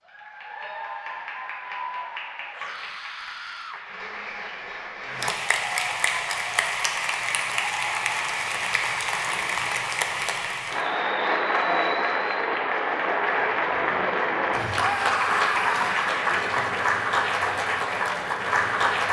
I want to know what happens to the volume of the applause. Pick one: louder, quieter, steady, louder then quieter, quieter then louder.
louder.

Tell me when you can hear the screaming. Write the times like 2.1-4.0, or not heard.
2.5-3.8, 14.8-16.1.